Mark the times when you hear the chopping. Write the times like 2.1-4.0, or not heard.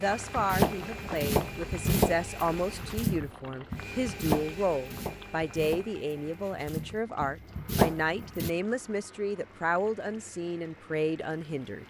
0.1-8.5.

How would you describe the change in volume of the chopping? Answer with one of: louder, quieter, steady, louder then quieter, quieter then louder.
quieter then louder.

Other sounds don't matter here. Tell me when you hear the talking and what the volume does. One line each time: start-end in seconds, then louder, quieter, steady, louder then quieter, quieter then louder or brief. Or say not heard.
0.0-11.8 steady.